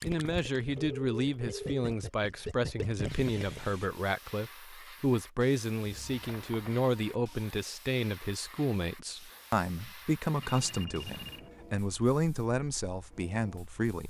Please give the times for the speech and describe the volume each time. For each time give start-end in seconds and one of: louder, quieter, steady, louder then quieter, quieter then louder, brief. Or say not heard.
0.0-14.0 steady.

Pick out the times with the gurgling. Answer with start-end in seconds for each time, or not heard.
0.0-3.6.